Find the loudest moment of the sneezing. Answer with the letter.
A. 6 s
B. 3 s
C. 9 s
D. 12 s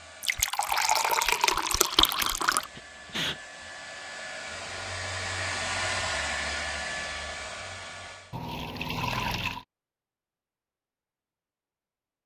B.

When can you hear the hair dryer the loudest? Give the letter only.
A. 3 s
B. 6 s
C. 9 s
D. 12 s
B.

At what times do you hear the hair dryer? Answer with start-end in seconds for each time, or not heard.
0.0-8.4.